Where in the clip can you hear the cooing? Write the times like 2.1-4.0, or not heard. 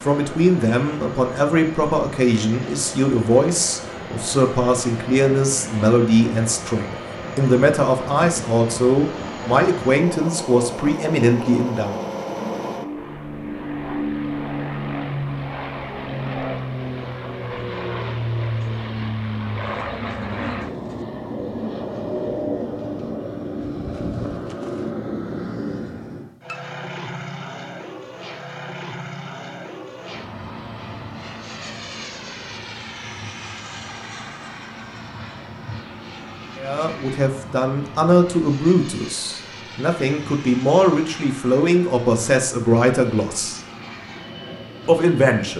19.6-24.9.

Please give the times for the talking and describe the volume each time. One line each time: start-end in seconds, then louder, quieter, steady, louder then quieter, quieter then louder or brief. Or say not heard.
0.0-12.0 steady
36.5-43.6 steady
44.9-45.5 brief.